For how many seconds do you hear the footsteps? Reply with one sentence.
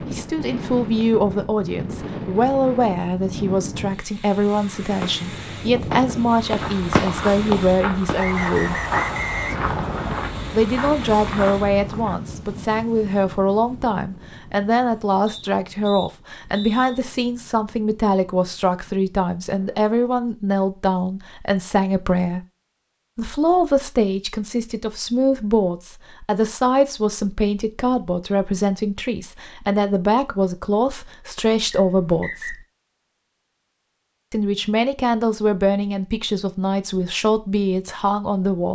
The footsteps can be heard for 6 seconds in total.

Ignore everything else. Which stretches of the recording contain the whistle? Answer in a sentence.
The whistle can be heard from 8.2 to 10.2 s, from 15.2 to 17.0 s and from 31.7 to 32.5 s.